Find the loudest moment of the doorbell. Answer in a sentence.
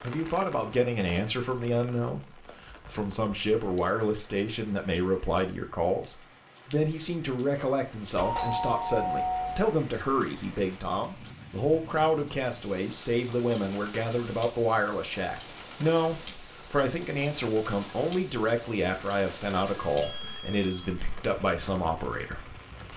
The loudest moment of the doorbell is at 9 seconds.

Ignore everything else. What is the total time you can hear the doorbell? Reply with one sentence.
The doorbell can be heard for 3 seconds in total.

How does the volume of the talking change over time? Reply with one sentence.
The volume of the talking stays about the same.